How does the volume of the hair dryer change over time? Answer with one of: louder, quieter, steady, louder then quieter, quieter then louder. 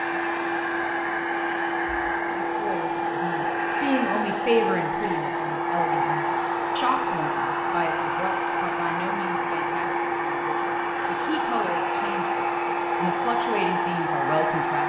steady.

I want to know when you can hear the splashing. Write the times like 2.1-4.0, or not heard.
not heard.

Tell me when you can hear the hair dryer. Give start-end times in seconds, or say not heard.
0.0-14.8.